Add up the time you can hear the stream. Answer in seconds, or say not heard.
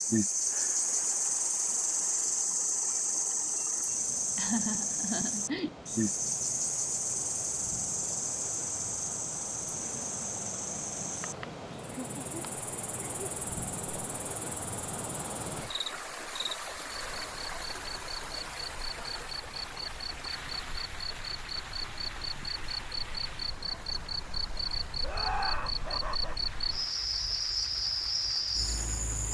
29 s.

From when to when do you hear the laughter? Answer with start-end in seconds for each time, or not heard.
4.3-5.8, 11.2-13.3, 25.0-26.5.